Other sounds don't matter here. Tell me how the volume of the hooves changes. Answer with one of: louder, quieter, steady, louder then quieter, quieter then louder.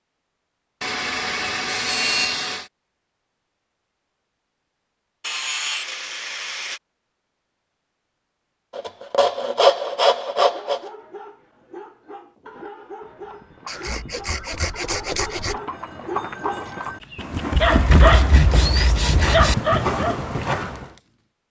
louder.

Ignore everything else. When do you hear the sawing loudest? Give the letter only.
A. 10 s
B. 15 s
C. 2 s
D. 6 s
A.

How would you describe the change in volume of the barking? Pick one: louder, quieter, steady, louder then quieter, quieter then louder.
louder.